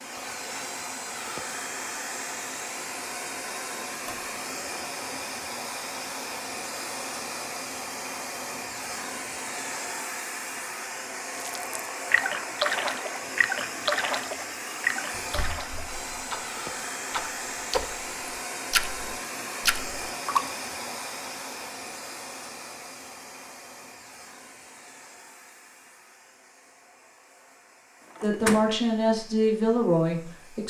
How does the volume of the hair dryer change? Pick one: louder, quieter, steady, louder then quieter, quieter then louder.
quieter.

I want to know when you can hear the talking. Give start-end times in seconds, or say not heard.
28.2-30.6.